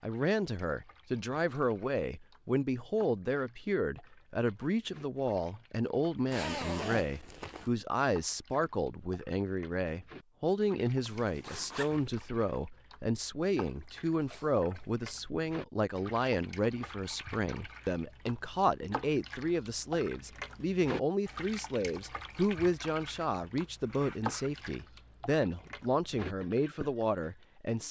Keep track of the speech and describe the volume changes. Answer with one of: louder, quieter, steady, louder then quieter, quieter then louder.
steady.